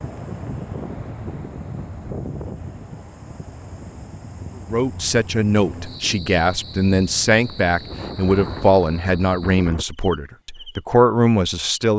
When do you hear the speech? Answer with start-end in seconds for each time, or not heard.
4.5-11.9.